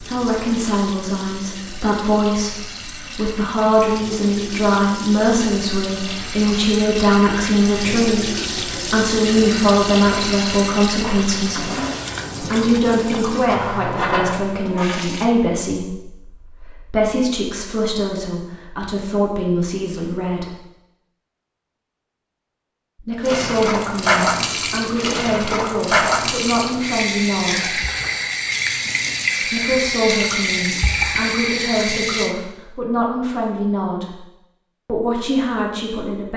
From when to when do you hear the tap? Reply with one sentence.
The tap can be heard from 0.0 to 15.3 s and from 23.2 to 32.4 s.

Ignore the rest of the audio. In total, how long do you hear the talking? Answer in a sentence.
You can hear the talking for 31 seconds altogether.